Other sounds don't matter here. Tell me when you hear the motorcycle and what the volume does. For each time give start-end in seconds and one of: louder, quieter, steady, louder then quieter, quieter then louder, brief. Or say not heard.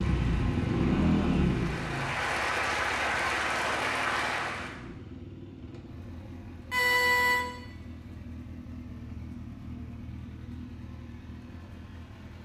0.0-12.4 quieter.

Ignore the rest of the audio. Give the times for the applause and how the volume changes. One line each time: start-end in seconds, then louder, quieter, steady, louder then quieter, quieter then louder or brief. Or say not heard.
0.0-4.8 louder.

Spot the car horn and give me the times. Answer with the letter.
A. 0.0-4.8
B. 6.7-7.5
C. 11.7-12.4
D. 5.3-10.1
B.